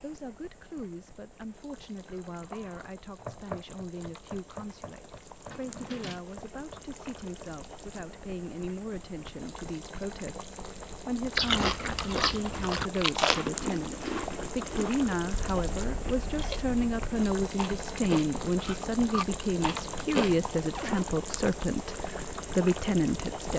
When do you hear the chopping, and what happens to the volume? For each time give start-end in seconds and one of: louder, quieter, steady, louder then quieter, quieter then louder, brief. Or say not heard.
2.0-7.7 quieter.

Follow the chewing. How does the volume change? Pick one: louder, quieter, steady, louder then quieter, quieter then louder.
quieter.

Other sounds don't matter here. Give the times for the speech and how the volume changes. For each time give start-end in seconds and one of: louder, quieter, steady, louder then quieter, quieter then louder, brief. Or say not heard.
0.0-23.5 louder.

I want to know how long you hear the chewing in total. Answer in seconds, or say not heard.
9 s.